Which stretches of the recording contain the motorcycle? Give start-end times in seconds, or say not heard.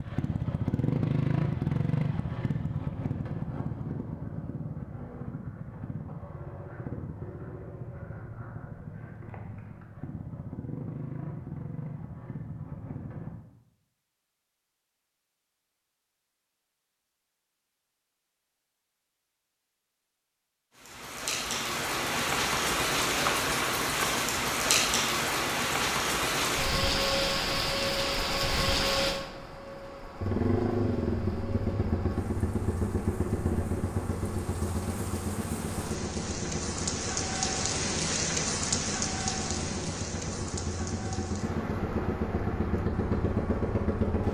0.0-13.3, 30.2-44.2.